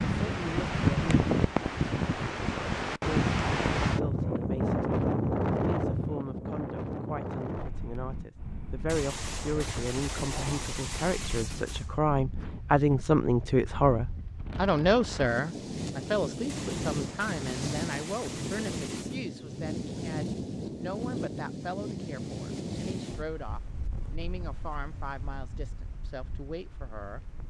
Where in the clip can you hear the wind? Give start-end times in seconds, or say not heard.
0.0-27.4.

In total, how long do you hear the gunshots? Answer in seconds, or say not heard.
6 s.